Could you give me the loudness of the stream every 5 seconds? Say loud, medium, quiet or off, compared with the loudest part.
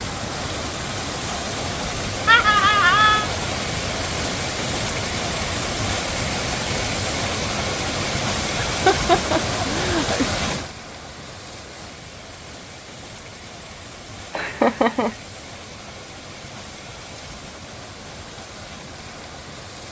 loud, loud, medium, quiet.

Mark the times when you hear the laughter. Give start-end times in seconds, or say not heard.
2.2-3.3, 8.7-10.3, 14.3-15.2.